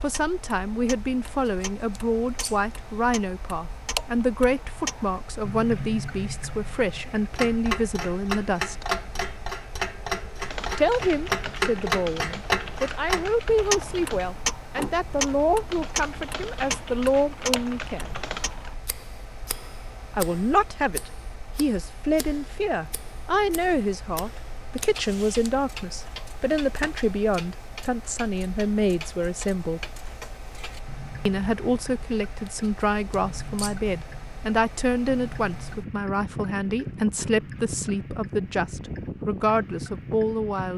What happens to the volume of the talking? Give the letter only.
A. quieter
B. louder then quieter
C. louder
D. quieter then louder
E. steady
E.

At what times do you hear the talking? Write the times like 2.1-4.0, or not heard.
0.0-8.9, 10.8-18.1, 20.1-29.9, 31.2-40.7.